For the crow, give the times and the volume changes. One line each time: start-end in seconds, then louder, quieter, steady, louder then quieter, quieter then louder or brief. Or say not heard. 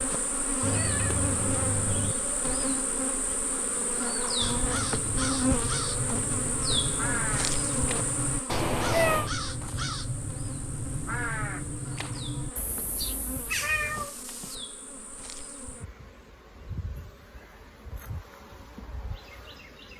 4.0-14.1 steady.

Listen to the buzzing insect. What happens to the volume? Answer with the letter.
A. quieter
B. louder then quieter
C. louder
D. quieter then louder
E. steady
A.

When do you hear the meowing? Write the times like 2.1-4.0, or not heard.
0.6-2.1, 8.4-9.3, 13.6-14.6.